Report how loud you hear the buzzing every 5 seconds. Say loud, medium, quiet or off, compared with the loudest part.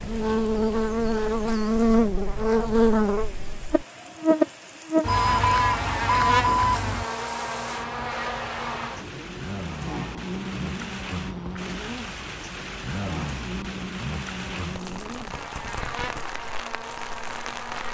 loud, medium, quiet, quiet.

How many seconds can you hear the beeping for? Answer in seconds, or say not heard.
2 s.